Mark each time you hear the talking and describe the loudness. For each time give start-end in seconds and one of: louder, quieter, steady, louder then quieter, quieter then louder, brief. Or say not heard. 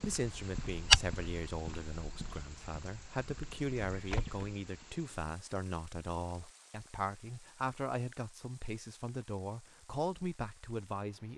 0.0-11.3 steady.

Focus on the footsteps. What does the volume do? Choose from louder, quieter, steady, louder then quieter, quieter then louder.
quieter then louder.